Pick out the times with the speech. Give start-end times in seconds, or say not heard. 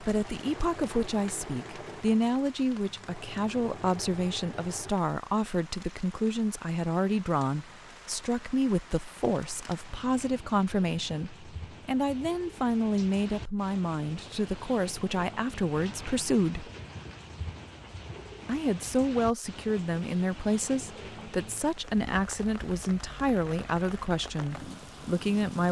0.0-16.7, 18.4-25.6.